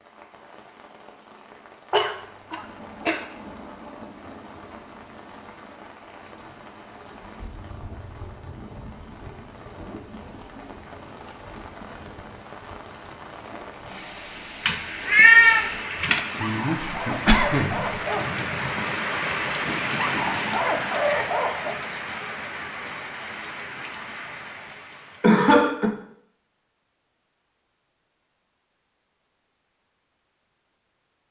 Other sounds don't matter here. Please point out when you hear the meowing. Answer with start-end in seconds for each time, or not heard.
14.7-16.2.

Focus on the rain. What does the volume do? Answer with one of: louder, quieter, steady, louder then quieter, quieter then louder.
louder.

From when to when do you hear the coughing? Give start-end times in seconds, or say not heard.
1.9-3.2, 16.4-17.8, 25.2-25.9.